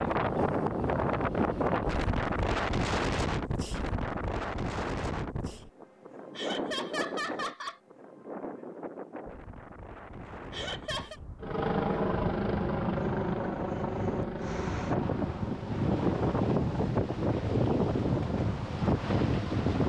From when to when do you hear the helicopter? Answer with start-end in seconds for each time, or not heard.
11.4-19.8.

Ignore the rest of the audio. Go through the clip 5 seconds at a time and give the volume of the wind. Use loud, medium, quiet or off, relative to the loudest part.
loud, medium, medium, loud.